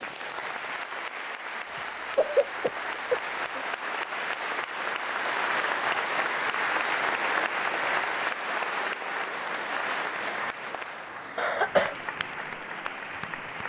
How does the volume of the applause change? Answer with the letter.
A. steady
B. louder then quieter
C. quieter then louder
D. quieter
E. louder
B.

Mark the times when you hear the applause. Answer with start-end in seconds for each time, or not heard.
0.0-13.6.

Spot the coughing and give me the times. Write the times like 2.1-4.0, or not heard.
1.6-3.6, 11.3-11.9.